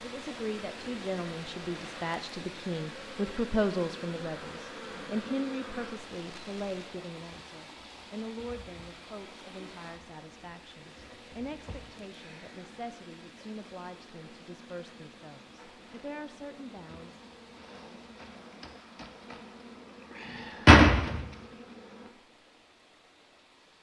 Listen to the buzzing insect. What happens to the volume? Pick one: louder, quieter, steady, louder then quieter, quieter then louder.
quieter then louder.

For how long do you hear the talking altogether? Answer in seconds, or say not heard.
17 s.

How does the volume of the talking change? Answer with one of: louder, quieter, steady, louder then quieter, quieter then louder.
quieter.